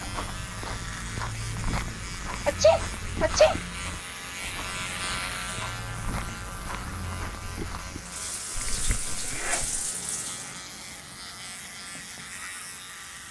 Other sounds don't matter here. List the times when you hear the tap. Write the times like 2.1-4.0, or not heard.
8.0-10.5.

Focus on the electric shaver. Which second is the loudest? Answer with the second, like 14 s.
5 s.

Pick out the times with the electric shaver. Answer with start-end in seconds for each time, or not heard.
0.0-13.2.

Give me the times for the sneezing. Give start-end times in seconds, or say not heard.
2.5-3.5, 8.6-9.8.